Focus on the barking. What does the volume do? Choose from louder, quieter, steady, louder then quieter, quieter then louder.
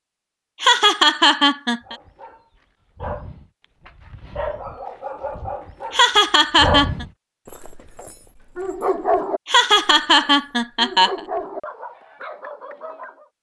louder then quieter.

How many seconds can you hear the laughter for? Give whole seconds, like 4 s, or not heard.
4 s.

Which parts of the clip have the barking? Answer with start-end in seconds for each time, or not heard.
1.8-13.2.